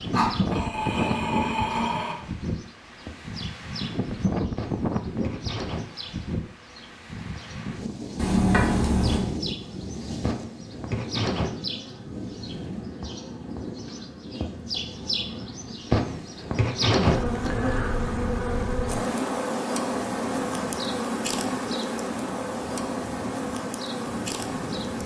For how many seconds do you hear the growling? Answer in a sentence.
The growling can be heard for 2 seconds in total.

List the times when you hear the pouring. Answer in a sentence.
You can hear the pouring from 8.2 to 9.2 s.